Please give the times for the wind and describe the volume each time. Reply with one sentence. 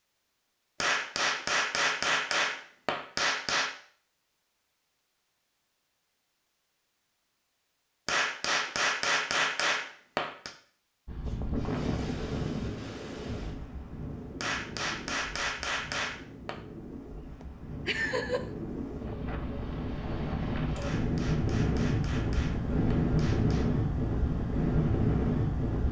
The wind can be heard from 11.1 to 25.8 s, getting quieter then louder.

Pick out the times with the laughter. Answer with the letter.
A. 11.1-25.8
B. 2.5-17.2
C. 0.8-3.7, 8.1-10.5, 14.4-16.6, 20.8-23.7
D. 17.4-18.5
D.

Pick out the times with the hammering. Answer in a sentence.
The hammering can be heard from 0.8 to 3.7 s, from 8.1 to 10.5 s, from 14.4 to 16.6 s and from 20.8 to 23.7 s.